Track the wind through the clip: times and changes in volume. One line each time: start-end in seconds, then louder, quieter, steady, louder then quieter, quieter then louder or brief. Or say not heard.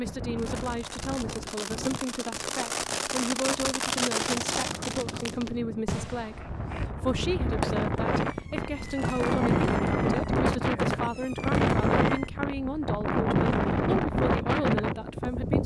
0.0-15.6 louder.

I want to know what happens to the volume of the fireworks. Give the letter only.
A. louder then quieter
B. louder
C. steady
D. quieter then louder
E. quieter
A.